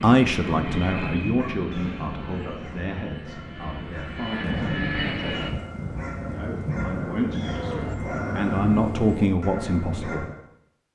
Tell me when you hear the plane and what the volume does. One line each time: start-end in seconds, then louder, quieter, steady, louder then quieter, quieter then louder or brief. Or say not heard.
0.0-5.5 quieter then louder.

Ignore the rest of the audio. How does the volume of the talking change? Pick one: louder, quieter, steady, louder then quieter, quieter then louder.
quieter then louder.